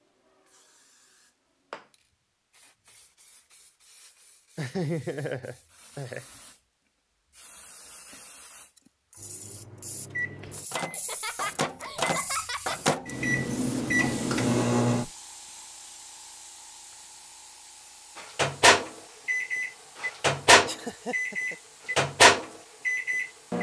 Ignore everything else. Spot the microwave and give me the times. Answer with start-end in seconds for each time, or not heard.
9.2-15.1, 18.1-23.5.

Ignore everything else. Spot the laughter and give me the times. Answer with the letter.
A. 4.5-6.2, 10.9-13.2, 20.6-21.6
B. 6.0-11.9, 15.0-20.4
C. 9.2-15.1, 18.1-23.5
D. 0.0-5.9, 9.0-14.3
A.